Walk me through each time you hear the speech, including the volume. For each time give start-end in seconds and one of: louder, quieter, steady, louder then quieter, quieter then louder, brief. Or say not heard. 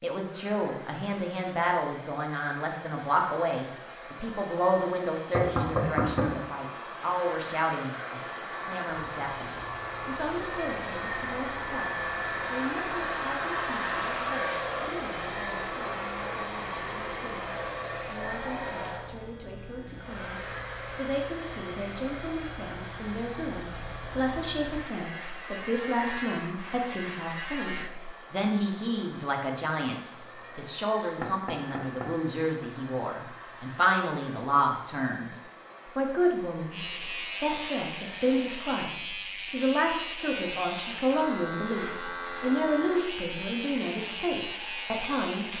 0.0-45.5 quieter then louder.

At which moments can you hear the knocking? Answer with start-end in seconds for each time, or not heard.
5.3-6.4, 31.2-32.1.